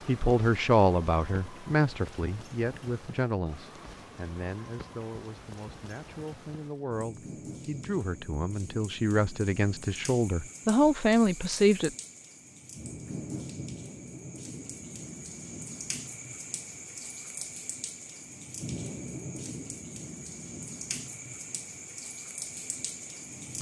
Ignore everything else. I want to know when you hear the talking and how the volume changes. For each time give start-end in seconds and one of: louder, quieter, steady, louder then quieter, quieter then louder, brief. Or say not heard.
0.1-11.9 quieter then louder.